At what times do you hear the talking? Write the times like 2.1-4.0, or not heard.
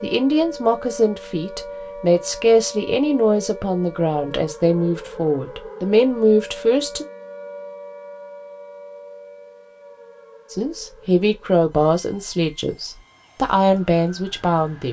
0.0-7.0, 10.5-14.8.